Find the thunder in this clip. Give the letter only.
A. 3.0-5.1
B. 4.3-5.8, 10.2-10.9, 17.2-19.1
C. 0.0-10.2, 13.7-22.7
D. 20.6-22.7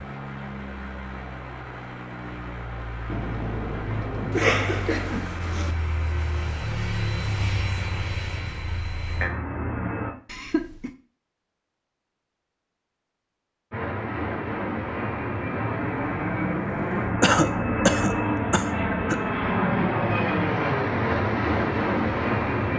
A.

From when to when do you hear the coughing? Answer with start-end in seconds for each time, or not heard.
4.3-5.8, 10.2-10.9, 17.2-19.1.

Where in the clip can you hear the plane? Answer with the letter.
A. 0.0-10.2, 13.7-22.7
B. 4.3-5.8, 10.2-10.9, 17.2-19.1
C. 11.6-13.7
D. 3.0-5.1
A.